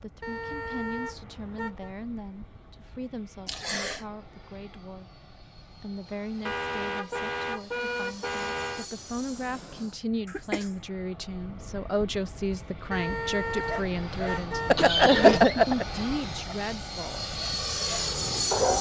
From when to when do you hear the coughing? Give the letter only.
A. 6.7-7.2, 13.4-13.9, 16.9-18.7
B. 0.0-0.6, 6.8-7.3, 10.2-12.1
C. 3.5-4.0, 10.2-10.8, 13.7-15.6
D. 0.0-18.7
C.